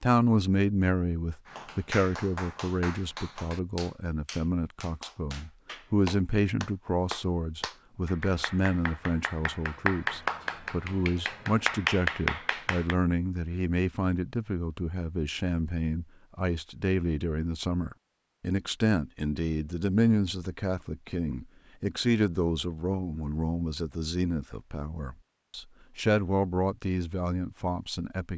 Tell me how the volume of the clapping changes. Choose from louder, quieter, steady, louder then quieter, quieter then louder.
louder.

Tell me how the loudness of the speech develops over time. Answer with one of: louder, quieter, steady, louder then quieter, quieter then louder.
steady.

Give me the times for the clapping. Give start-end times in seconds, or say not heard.
1.4-12.9.